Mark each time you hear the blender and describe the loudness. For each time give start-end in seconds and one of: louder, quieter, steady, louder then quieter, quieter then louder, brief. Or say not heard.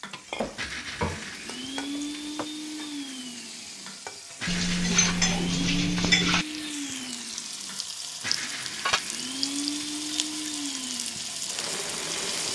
0.0-12.5 steady.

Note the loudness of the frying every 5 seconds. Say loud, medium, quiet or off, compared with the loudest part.
medium, loud, loud.